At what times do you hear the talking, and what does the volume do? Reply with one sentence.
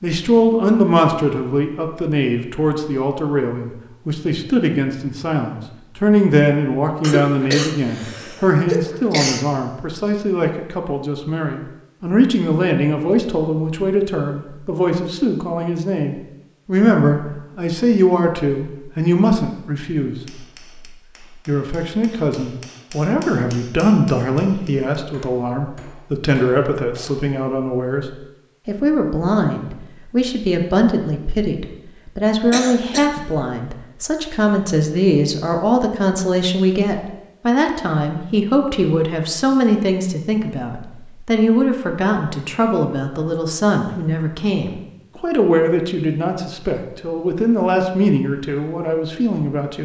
The talking can be heard from 0.0 to 20.6 s, at a steady volume; and from 21.4 to 49.8 s, at a steady volume.